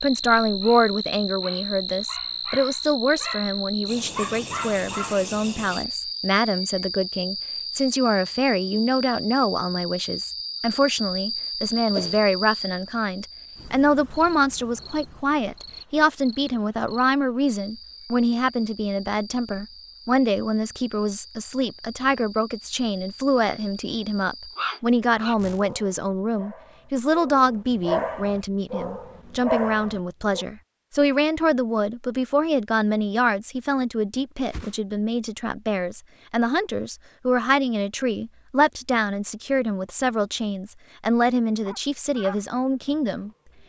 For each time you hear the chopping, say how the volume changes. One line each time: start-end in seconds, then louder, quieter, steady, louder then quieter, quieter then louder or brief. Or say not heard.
not heard.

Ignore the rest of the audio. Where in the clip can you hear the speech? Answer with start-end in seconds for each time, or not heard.
0.0-43.3.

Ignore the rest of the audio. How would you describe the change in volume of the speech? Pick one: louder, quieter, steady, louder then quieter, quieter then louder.
steady.